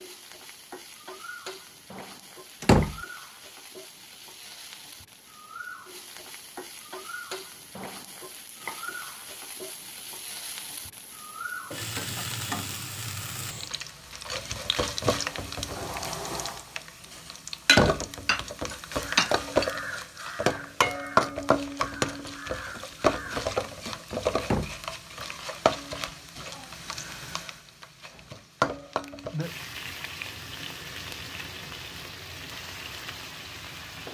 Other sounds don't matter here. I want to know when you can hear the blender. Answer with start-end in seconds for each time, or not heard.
not heard.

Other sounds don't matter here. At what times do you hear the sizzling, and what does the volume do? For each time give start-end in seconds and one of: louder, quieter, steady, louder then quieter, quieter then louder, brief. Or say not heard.
0.0-34.1 louder then quieter.